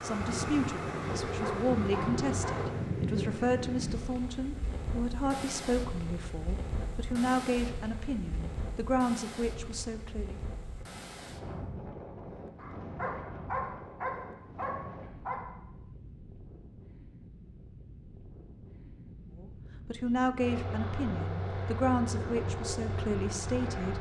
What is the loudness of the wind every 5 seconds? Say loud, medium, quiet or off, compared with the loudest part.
loud, medium, medium, quiet, medium.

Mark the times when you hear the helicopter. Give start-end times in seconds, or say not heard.
0.0-2.8, 20.4-23.9.